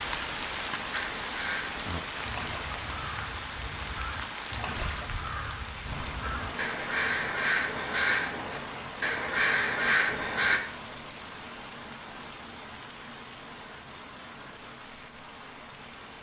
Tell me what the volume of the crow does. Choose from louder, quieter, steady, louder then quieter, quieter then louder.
louder.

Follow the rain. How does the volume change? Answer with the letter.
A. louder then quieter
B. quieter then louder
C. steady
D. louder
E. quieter
E.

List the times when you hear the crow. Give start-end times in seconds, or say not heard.
0.9-10.6.